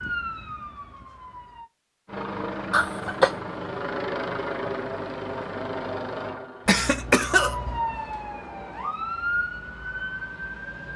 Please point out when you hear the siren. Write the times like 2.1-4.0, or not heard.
0.0-1.7, 7.3-10.9.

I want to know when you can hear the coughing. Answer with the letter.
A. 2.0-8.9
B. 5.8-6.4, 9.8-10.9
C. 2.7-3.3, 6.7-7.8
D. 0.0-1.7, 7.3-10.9
C.